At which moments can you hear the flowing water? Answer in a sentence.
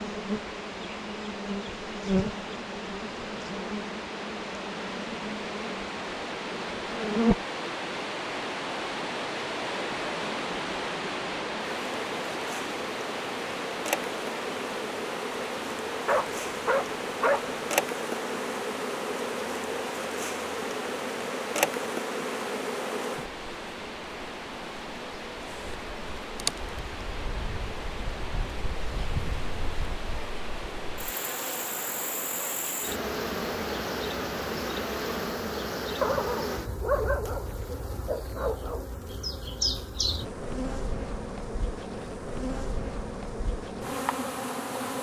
The flowing water can be heard from 0.0 to 35.4 s.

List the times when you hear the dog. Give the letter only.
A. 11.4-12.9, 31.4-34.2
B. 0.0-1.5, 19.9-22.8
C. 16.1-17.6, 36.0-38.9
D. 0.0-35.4
C.